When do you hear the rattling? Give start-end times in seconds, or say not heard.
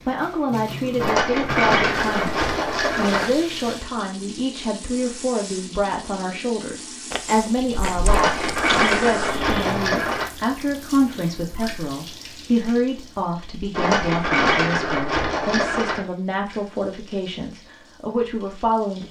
0.9-3.4, 8.1-10.3, 13.7-16.0.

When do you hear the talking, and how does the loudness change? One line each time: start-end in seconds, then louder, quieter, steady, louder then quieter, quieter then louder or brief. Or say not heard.
0.1-19.0 steady.